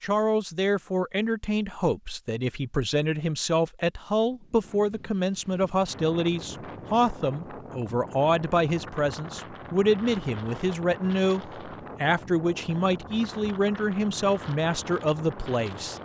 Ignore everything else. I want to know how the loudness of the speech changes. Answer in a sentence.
The loudness of the speech stays about the same.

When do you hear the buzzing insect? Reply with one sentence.
The buzzing insect can't be heard in this clip.